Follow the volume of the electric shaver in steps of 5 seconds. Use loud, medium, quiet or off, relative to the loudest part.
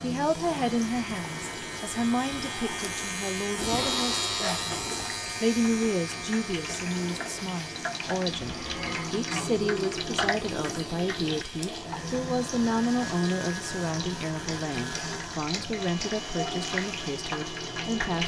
loud, medium, medium, medium.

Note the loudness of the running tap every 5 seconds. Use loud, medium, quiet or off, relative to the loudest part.
medium, loud, loud, loud.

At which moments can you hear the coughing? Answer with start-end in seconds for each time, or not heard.
8.3-9.5.